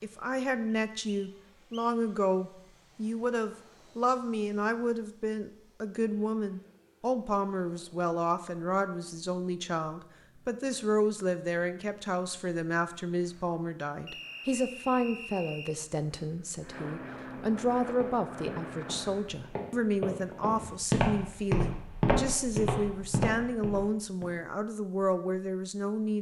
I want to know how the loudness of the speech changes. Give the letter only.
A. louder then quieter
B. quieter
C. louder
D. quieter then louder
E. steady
E.